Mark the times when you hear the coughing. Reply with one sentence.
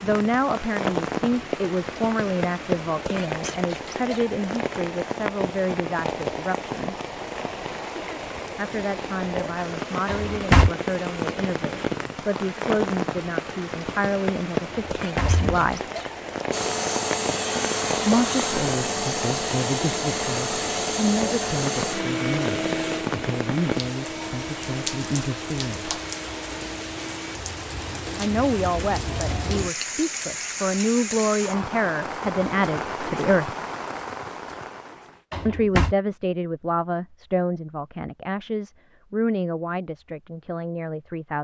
You can't hear the coughing here.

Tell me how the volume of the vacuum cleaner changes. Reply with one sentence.
The loudness of the vacuum cleaner goes down.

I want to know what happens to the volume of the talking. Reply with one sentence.
The loudness of the talking stays about the same.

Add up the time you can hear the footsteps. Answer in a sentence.
The footsteps can't be heard in this clip.